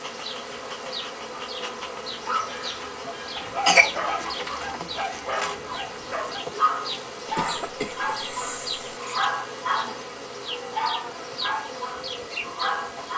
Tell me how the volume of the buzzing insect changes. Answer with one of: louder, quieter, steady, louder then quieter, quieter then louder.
steady.